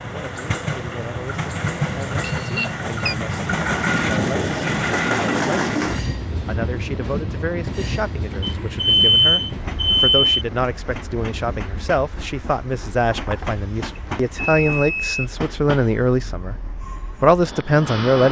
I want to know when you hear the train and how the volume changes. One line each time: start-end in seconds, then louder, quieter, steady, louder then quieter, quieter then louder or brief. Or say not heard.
0.0-18.2 quieter.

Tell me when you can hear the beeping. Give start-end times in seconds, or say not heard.
2.2-3.1, 8.4-10.4, 13.1-15.2.